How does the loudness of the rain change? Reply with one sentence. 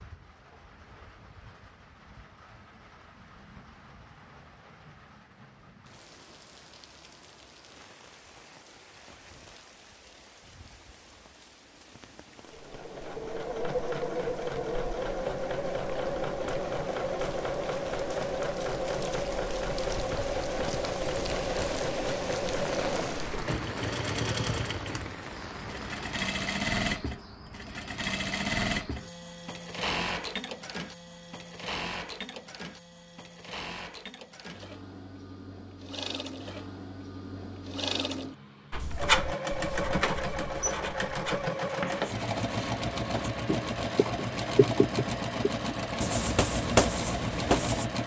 The loudness of the rain goes up.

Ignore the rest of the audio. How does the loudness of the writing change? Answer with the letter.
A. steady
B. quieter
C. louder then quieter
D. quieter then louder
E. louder
D.